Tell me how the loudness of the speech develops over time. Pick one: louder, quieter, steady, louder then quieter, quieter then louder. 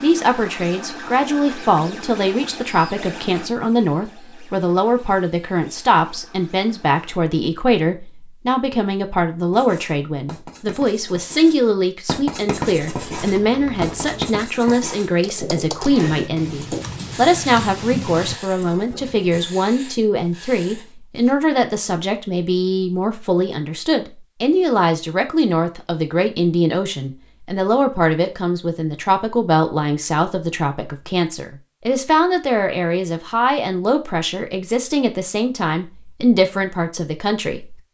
steady.